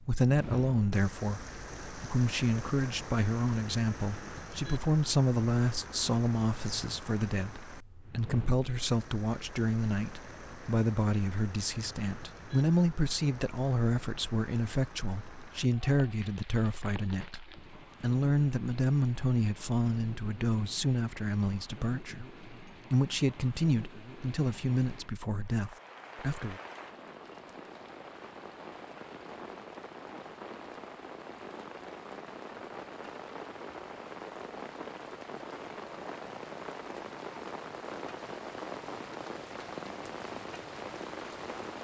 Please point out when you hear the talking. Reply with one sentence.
You can hear the talking from 0.0 to 26.6 s.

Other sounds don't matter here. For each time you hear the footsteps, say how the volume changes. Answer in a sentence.
You can't hear the footsteps here.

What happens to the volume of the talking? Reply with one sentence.
The volume of the talking stays about the same.